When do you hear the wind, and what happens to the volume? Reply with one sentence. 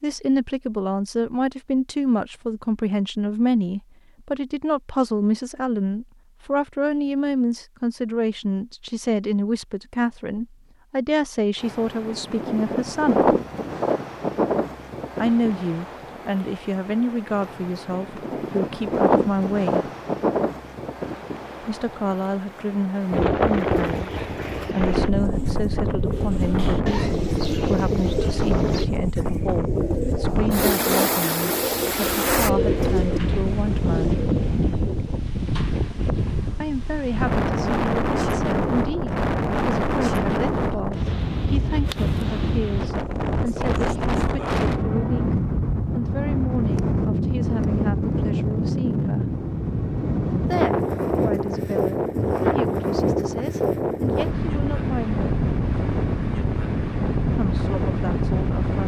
The wind can be heard from 11.6 to 58.8 s, at a steady volume.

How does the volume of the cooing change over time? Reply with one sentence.
The volume of the cooing goes up.